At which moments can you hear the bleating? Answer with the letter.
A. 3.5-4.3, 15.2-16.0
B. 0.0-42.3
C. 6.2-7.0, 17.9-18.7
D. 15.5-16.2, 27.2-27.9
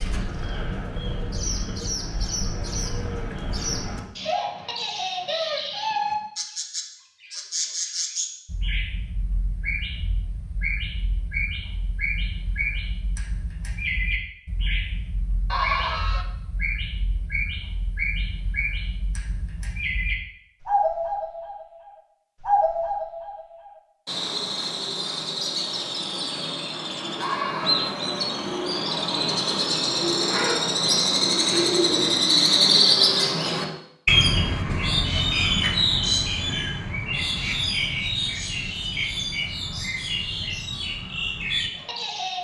D.